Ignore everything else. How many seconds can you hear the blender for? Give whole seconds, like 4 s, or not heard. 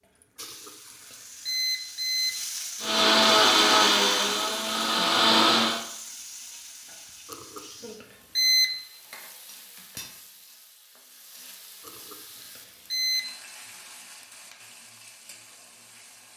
3 s.